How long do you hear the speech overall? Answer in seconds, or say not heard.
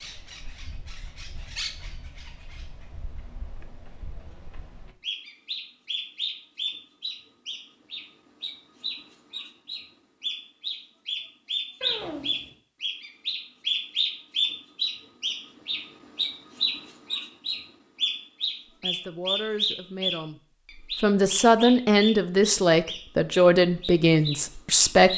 6 s.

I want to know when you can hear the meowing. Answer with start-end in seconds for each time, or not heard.
11.8-12.6.